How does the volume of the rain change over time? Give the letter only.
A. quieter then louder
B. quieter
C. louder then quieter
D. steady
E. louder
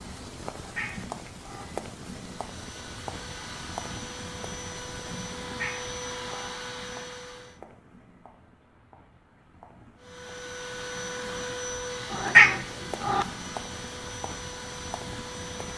A.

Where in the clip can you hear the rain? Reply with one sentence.
The rain can be heard from 0.0 to 15.7 s.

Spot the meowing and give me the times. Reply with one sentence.
The meowing can be heard from 0.5 to 1.6 s, from 5.4 to 6.5 s and from 12.1 to 13.2 s.